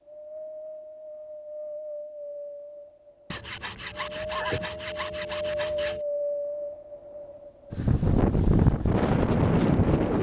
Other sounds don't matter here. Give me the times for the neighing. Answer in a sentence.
The neighing can be heard from 3.8 to 4.8 s.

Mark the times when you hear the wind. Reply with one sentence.
You can hear the wind from 0.0 to 10.1 s.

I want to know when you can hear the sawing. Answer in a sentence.
You can hear the sawing from 3.3 to 6.0 s.